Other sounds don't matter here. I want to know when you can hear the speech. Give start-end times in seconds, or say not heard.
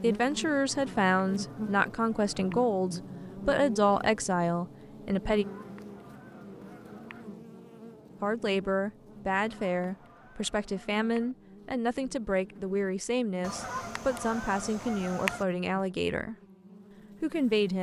0.0-5.5, 8.2-16.4, 17.2-17.7.